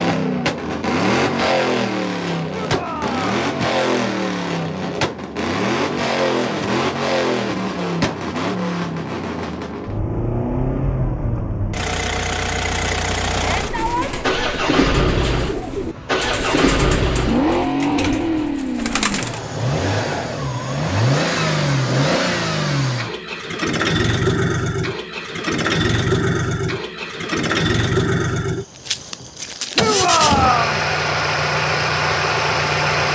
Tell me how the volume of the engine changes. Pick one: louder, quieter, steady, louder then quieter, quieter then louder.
steady.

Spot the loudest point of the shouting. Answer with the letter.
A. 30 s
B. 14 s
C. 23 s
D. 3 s
A.